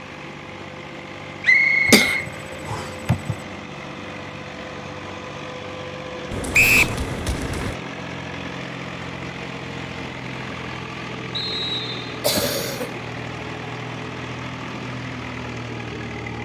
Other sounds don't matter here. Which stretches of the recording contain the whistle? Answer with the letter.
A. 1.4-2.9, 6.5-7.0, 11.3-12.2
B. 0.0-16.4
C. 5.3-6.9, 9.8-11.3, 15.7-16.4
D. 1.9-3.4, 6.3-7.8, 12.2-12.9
A.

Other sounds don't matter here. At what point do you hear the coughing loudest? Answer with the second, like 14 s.
2 s.